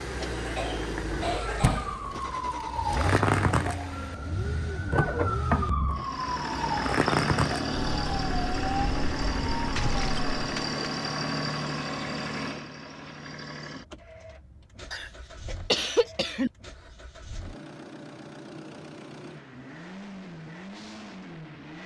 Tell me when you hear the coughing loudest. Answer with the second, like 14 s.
16 s.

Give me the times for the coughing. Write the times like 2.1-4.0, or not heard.
0.2-2.0, 9.8-10.8, 14.9-16.5.